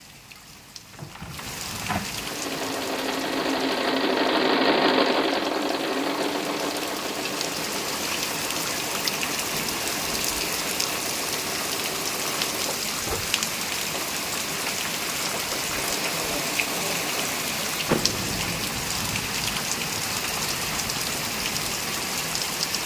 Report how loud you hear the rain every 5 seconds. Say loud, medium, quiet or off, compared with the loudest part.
medium, loud, loud, loud, loud.